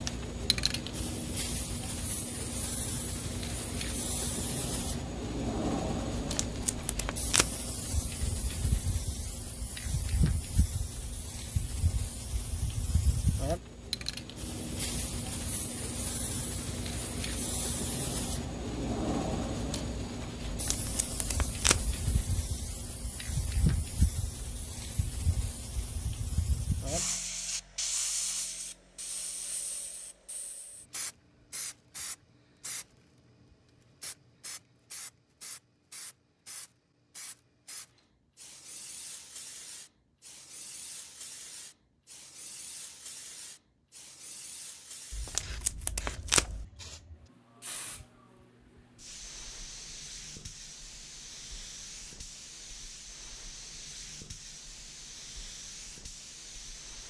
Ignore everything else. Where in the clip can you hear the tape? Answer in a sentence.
You can hear the tape from 6.2 to 7.5 s, from 20.4 to 22.0 s and from 45.1 to 46.6 s.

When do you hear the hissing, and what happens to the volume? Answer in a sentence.
You can hear the hissing from 0.0 to 57.0 s, getting quieter.